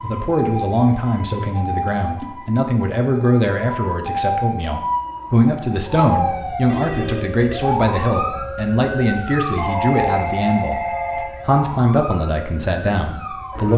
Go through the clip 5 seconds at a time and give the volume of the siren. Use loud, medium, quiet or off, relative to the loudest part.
loud, loud, medium.